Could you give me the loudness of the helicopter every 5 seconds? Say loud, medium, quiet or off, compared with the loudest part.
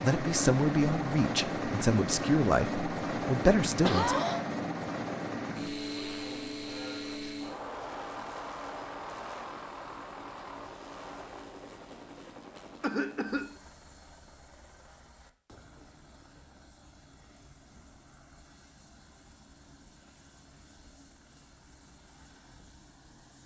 loud, medium, quiet, quiet, quiet.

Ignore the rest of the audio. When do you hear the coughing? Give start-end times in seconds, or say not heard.
3.8-4.5, 12.8-13.6.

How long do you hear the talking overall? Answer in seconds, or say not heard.
4 s.